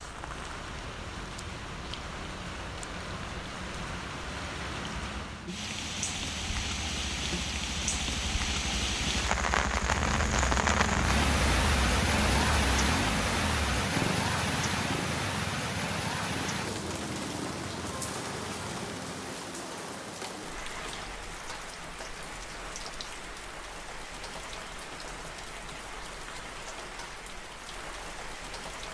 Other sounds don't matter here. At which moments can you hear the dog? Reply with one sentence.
You can't hear the dog here.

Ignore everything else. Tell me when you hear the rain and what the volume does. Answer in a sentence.
You can hear the rain from 0.0 to 28.8 s, getting louder then quieter.